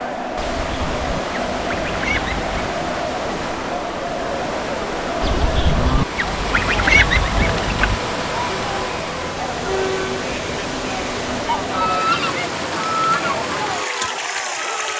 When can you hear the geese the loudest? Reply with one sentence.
The loudest moment of the geese is at 7 seconds.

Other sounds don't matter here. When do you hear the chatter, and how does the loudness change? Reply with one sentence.
The chatter can be heard from 0.0 to 14.9 s, at a steady volume.